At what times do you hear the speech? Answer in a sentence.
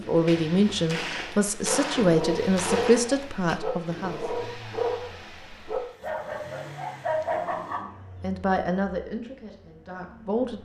You can hear the speech from 0.0 to 4.2 s and from 8.2 to 10.5 s.